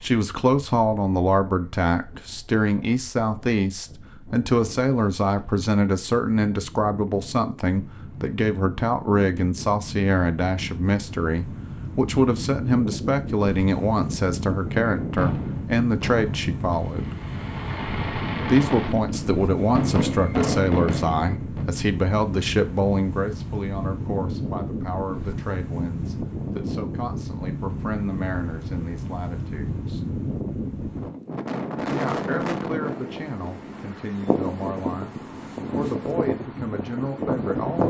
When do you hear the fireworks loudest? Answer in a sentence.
The loudest moment of the fireworks is at 20 seconds.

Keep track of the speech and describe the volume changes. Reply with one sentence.
The volume of the speech goes down.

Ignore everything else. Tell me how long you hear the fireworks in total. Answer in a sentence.
The fireworks can be heard for 7 seconds in total.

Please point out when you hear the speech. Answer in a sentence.
The speech can be heard from 0.0 to 17.1 s, from 18.4 to 30.0 s and from 31.8 to 37.8 s.